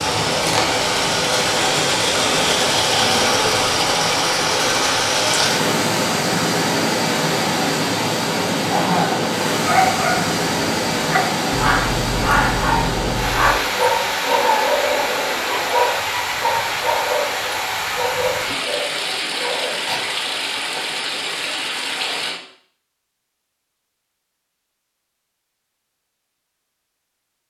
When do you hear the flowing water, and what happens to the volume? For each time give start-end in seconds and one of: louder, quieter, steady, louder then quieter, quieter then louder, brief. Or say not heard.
0.0-22.4 quieter.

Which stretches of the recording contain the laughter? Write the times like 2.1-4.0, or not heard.
8.7-9.2.